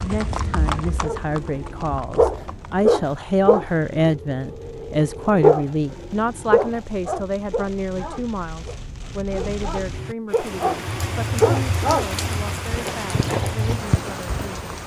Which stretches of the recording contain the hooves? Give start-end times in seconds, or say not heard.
0.0-2.9, 12.7-14.6.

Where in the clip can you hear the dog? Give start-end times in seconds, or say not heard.
0.8-12.1.